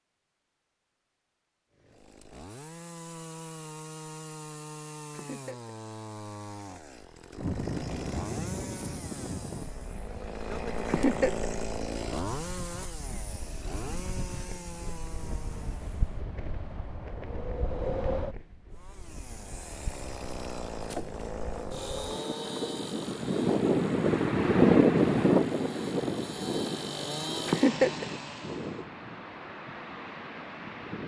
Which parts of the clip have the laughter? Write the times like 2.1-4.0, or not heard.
5.1-5.7, 10.8-11.6, 27.4-28.1.